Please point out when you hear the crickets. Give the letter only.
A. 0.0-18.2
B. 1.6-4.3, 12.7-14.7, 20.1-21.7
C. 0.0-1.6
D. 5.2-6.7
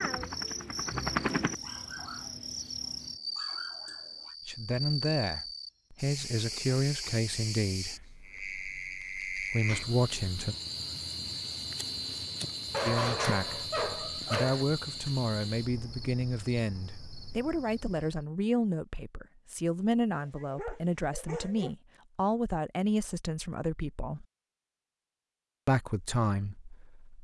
A.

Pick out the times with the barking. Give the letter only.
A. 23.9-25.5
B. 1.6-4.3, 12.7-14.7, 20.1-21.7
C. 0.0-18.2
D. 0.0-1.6
B.